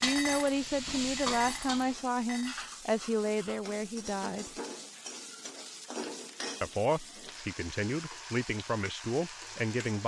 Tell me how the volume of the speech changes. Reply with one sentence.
The loudness of the speech stays about the same.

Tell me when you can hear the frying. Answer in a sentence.
The frying can be heard from 0.0 to 10.0 s.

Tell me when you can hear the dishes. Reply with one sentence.
You can hear the dishes from 0.0 to 2.6 s.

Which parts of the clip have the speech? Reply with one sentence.
The speech can be heard from 0.0 to 4.5 s and from 6.6 to 10.0 s.